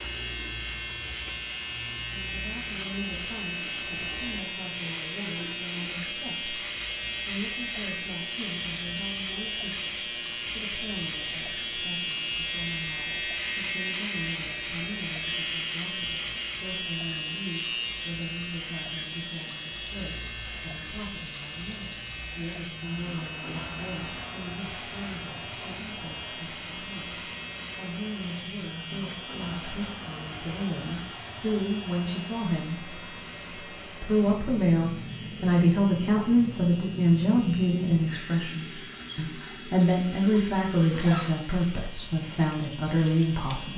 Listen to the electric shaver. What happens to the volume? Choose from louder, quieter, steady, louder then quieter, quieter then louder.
quieter.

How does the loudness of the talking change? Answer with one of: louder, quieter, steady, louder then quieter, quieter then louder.
louder.